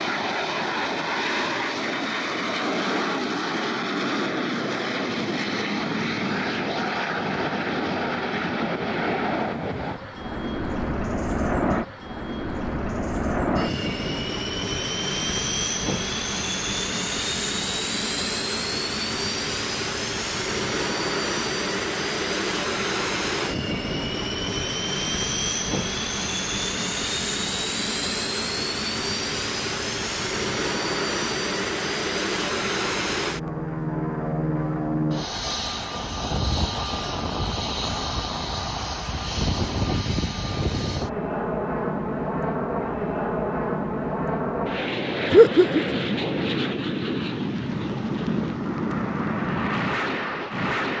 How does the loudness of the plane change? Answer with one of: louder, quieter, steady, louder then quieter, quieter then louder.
steady.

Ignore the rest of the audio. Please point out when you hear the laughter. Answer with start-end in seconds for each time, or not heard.
45.3-46.0.